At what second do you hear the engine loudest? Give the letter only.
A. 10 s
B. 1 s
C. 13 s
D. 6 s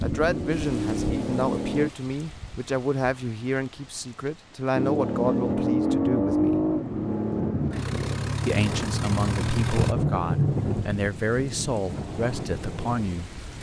D.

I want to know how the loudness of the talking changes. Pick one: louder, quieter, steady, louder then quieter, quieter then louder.
steady.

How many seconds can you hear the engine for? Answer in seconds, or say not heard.
7 s.